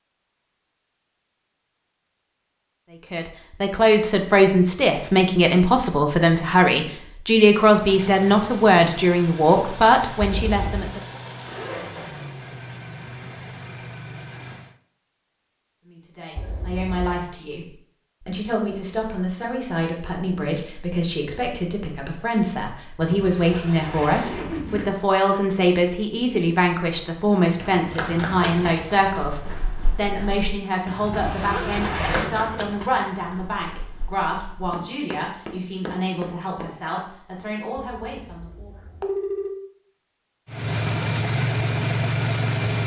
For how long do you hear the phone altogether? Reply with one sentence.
You can hear the phone for 3 seconds altogether.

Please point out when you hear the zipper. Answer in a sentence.
You can hear the zipper from 11.4 to 12.4 s, from 23.1 to 24.9 s and from 31.0 to 32.4 s.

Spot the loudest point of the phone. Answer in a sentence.
The loudest moment of the phone is at 39 seconds.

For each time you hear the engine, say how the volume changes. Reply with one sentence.
You can hear the engine from 7.7 to 14.8 s, at a steady volume; and briefly from 40.5 to 42.8 s.